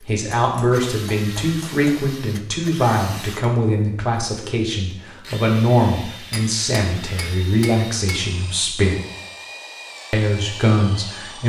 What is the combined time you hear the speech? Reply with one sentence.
You can hear the speech for 10 seconds altogether.